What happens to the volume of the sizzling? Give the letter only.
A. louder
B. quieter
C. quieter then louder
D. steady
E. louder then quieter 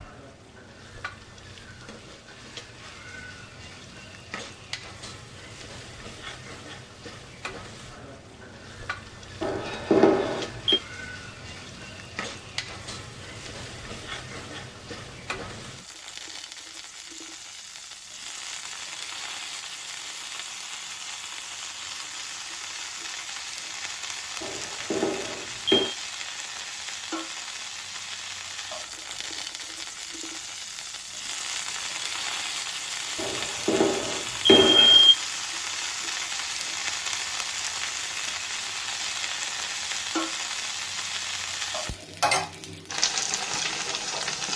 A.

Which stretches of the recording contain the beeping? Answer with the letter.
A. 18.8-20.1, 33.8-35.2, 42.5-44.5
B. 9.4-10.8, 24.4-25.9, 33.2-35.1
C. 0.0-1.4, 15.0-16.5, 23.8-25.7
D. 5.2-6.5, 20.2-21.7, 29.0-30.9
B.